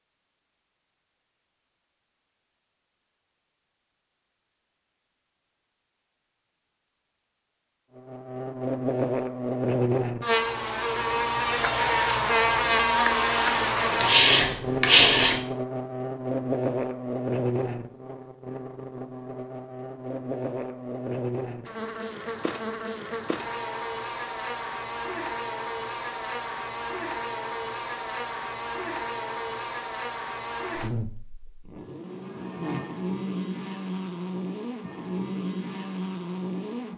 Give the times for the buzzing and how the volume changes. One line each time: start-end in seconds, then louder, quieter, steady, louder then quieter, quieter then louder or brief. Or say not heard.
8.0-36.9 quieter.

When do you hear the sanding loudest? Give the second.
15 s.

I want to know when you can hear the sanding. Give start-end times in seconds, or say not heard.
13.3-15.4.